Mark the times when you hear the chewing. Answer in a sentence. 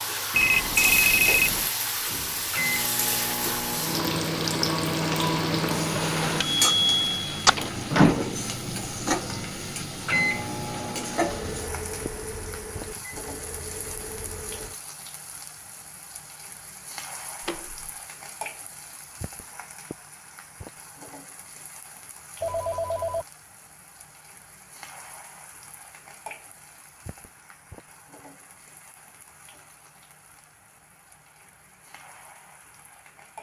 You can't hear the chewing here.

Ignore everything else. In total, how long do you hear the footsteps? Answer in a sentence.
You can't hear the footsteps here.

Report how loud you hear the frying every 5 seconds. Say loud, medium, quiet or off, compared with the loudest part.
loud, loud, medium, quiet, quiet, quiet, quiet.